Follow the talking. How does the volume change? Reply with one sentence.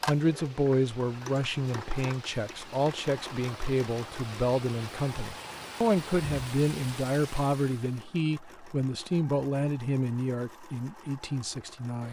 The volume of the talking stays about the same.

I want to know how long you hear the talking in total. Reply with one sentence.
You can hear the talking for 12 seconds altogether.